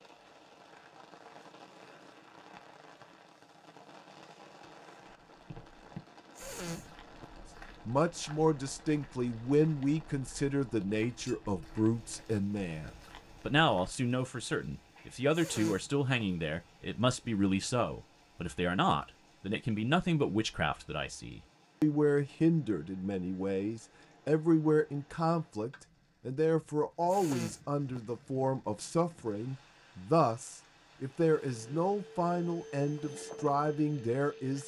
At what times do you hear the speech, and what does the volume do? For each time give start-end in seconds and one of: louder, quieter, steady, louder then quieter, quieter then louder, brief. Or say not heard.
7.8-34.6 steady.